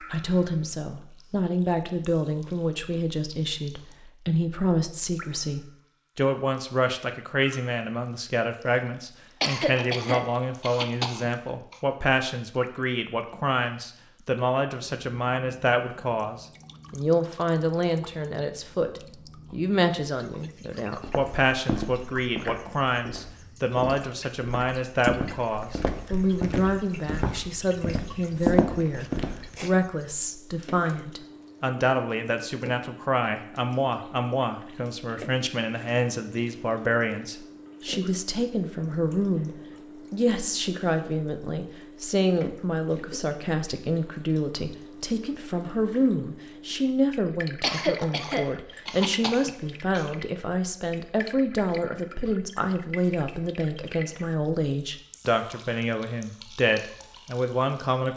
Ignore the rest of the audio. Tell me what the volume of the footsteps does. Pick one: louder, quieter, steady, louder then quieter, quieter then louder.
louder.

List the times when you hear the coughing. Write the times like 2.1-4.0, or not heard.
9.4-11.8, 47.6-50.1.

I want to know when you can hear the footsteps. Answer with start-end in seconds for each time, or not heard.
21.0-29.8.